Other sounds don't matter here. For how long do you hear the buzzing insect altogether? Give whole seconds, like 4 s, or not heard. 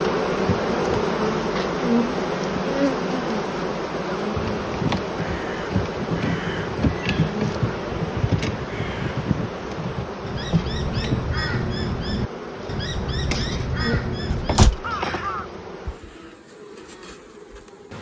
18 s.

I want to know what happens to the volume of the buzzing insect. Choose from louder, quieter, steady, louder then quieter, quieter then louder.
quieter.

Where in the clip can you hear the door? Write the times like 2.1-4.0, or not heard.
14.3-14.8.